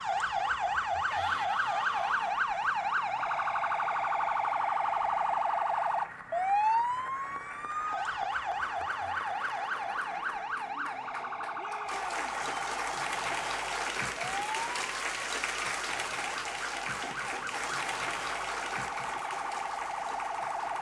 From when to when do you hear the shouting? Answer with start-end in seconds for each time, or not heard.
1.1-2.4, 11.6-12.3.